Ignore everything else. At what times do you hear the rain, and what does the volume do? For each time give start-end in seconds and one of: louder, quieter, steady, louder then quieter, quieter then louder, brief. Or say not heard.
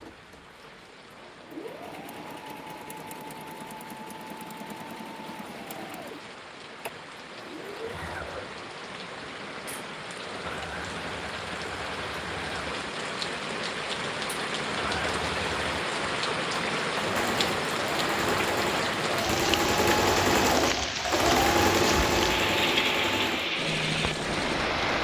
0.0-25.0 louder.